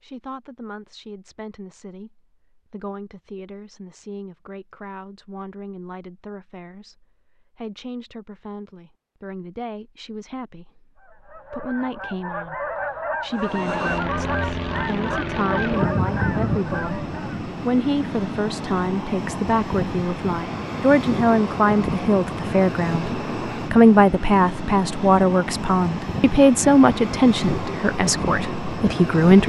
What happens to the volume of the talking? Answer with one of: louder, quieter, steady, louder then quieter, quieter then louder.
louder.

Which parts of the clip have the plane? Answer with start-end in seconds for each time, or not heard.
13.3-29.4.